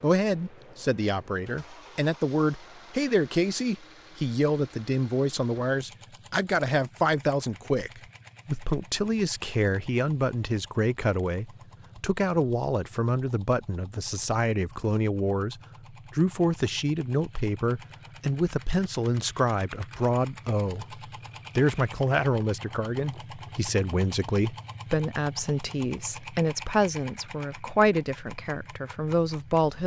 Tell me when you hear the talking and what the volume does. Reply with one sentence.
You can hear the talking from 0.0 to 29.8 s, at a steady volume.